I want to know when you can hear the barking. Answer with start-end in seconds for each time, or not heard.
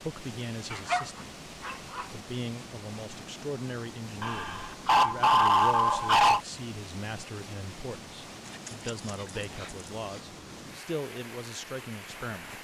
0.7-2.0, 4.2-6.4, 8.4-10.2.